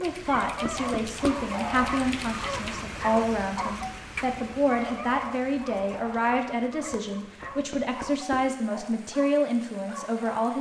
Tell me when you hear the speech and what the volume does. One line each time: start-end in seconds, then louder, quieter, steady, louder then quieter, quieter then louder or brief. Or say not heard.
0.0-10.5 steady.